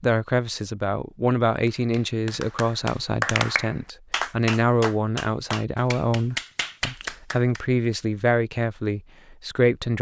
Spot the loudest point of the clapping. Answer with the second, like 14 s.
3 s.